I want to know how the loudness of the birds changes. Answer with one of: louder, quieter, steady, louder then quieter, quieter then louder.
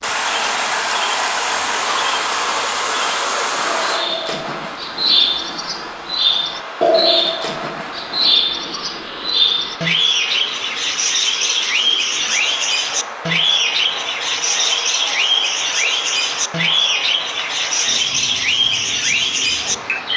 louder.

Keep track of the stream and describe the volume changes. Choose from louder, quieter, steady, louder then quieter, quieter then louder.
quieter.